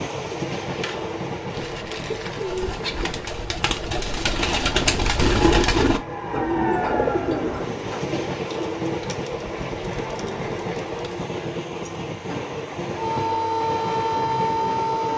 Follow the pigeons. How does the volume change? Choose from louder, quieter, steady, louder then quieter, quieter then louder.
louder then quieter.